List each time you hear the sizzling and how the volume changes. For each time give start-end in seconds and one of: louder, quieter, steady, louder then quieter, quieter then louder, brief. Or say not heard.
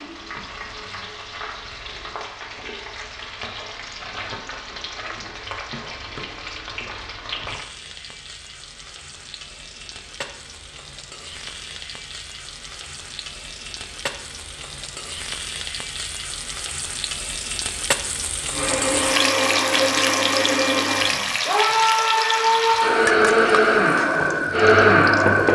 0.0-25.5 louder.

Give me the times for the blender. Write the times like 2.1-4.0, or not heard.
18.5-25.5.